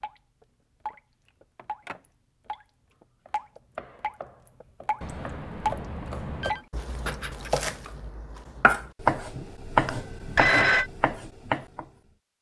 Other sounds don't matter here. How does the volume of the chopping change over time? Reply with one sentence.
The loudness of the chopping goes up, then down.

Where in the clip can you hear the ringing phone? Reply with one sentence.
You can hear the ringing phone from 1.6 to 2.0 s, from 5.0 to 6.7 s and from 9.8 to 10.9 s.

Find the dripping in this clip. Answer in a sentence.
The dripping can be heard from 0.0 to 7.7 s.